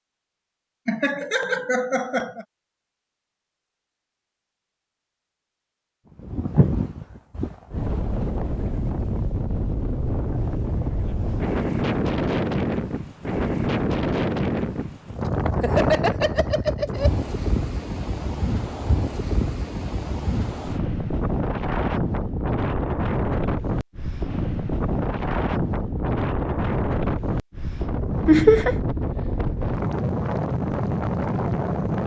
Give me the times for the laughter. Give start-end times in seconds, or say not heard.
0.8-2.5, 15.6-17.1, 28.2-28.8.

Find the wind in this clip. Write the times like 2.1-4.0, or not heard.
6.2-32.0.